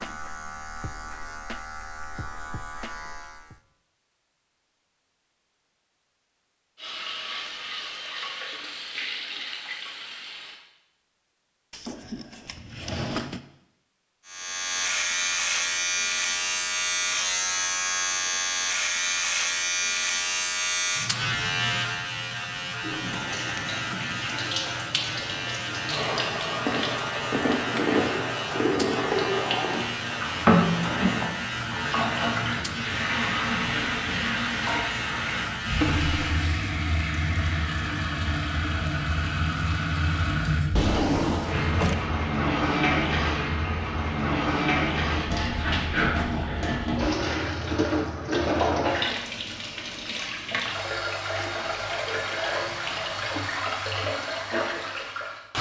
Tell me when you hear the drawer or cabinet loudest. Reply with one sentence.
The loudest moment of the drawer or cabinet is at 41 seconds.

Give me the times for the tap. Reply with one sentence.
You can hear the tap from 6.8 to 10.6 s and from 22.8 to 55.5 s.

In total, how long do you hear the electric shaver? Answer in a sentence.
The electric shaver can be heard for 26 seconds in total.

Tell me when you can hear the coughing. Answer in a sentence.
The coughing can't be heard in this clip.